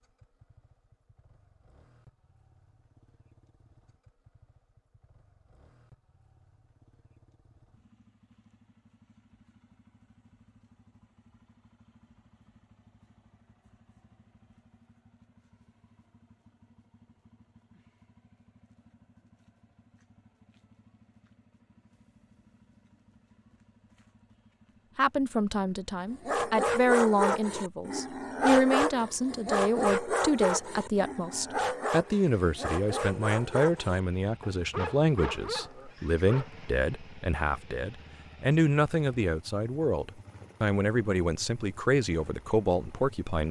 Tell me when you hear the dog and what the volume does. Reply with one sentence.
You can hear the dog from 26.1 to 36.5 s, getting quieter.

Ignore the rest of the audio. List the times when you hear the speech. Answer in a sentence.
You can hear the speech from 24.9 to 43.4 s.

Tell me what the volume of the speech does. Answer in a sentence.
The loudness of the speech stays about the same.